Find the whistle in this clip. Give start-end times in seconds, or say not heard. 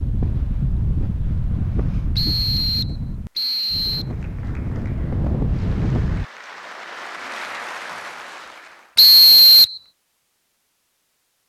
2.1-4.0, 8.9-9.8.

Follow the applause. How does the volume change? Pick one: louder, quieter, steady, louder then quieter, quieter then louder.
louder.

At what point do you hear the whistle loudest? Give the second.
9 s.